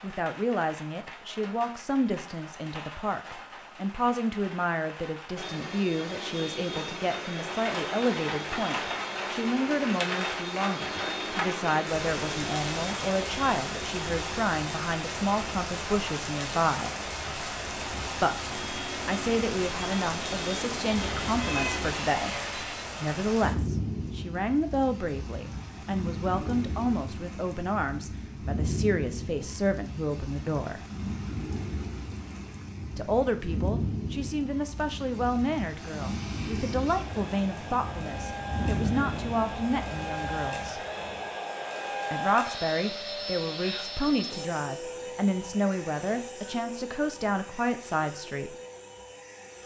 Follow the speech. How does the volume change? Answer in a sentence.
The loudness of the speech stays about the same.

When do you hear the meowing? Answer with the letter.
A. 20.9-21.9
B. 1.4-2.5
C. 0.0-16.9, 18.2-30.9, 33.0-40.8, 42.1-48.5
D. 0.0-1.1
A.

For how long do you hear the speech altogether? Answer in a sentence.
You can hear the speech for 44 seconds altogether.